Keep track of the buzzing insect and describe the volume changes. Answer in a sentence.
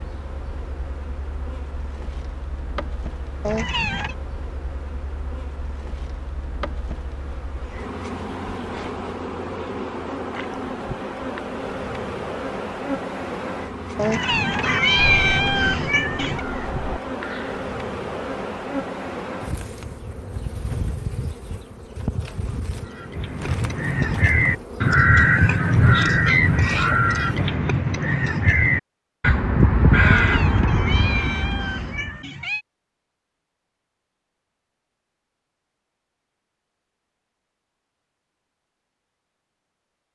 The volume of the buzzing insect goes up.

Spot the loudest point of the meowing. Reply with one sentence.
The loudest moment of the meowing is at 15 seconds.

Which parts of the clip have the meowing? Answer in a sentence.
The meowing can be heard from 3.4 to 4.2 s, from 13.9 to 16.4 s and from 30.0 to 32.6 s.